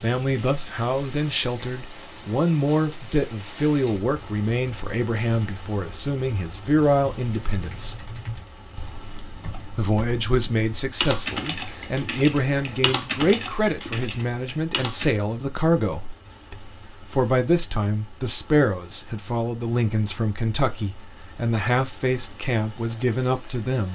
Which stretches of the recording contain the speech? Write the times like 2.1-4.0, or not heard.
0.0-8.1, 9.8-23.9.